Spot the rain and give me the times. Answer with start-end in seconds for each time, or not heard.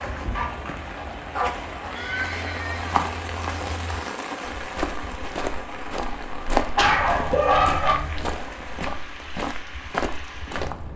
0.0-10.9.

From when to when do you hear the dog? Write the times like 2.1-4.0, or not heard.
0.3-1.9, 6.0-8.0.